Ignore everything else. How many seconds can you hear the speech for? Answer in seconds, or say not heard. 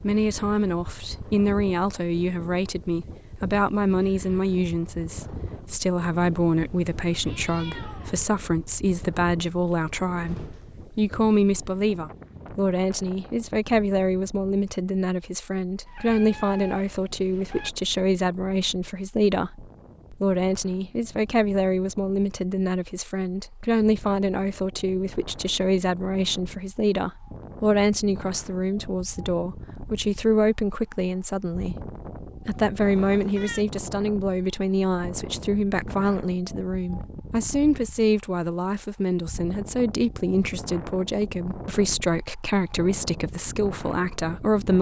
45 s.